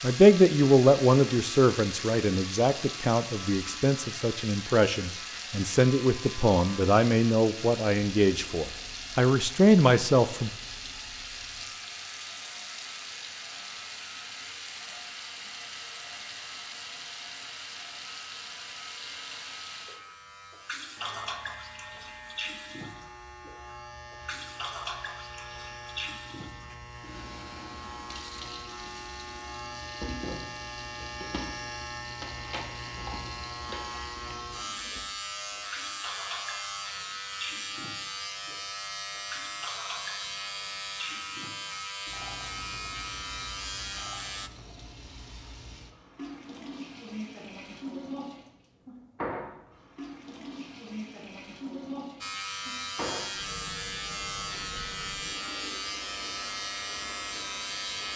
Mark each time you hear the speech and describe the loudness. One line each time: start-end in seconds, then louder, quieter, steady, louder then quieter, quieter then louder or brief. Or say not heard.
0.0-10.5 quieter then louder.